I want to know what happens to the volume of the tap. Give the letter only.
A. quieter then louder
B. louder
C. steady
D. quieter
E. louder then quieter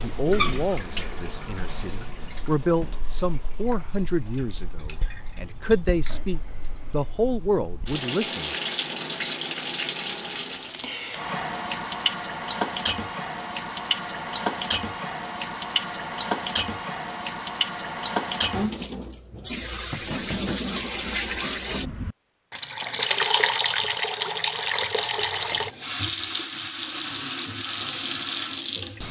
B.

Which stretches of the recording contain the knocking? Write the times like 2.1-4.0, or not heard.
19.9-20.6.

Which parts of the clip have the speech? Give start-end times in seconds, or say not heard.
0.0-8.6.